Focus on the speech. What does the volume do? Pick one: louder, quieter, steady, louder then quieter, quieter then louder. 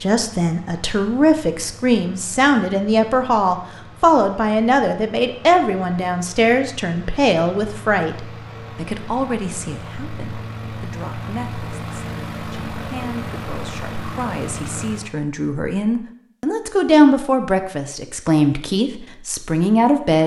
quieter then louder.